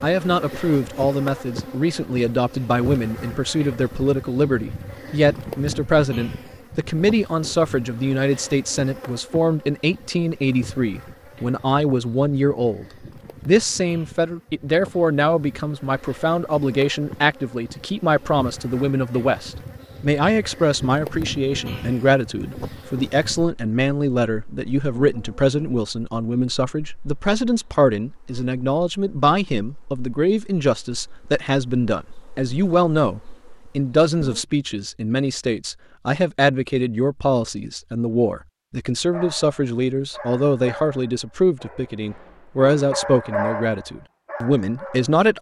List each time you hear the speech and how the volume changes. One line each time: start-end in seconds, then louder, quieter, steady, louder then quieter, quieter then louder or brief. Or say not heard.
0.0-12.8 steady
13.4-45.3 steady.